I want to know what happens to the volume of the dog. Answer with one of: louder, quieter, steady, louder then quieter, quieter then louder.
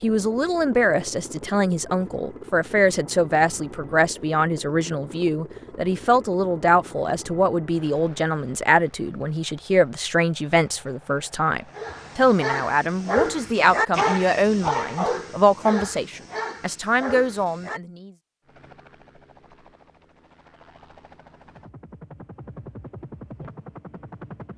louder then quieter.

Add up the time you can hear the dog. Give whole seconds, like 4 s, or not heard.
6 s.